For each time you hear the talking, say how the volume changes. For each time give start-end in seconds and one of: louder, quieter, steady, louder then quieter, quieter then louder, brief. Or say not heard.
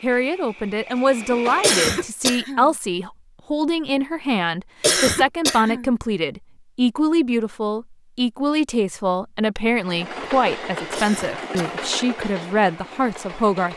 0.0-13.7 steady.